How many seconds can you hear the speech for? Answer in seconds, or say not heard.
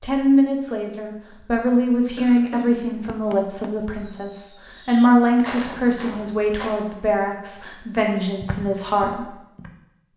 9 s.